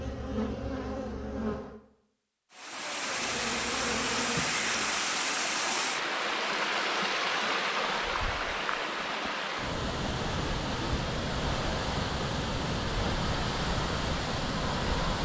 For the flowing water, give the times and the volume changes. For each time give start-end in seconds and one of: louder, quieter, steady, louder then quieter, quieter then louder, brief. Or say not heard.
2.5-15.2 steady.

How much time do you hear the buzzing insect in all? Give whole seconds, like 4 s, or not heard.
4 s.